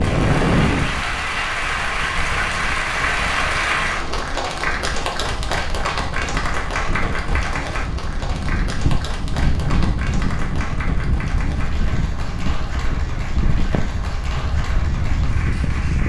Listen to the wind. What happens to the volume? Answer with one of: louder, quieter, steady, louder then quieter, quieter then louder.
quieter then louder.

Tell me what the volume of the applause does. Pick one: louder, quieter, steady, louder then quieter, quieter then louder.
quieter.